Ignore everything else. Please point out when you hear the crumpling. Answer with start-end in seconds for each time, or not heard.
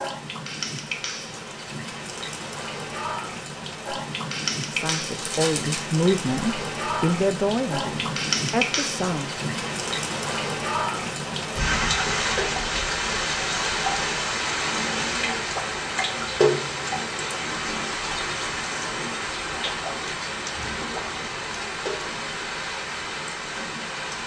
4.8-5.8.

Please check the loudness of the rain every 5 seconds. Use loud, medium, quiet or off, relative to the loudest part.
medium, loud, loud, loud, medium.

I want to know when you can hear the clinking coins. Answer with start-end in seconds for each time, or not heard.
not heard.